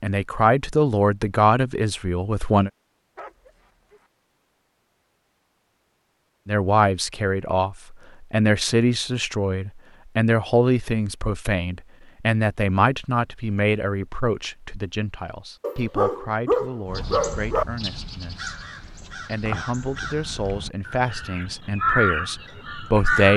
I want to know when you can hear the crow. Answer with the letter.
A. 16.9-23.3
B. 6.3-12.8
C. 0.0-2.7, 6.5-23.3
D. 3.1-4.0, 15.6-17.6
A.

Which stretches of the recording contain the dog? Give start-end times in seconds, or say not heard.
3.1-4.0, 15.6-17.6.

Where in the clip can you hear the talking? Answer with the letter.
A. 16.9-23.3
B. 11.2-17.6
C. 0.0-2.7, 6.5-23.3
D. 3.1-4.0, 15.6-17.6
C.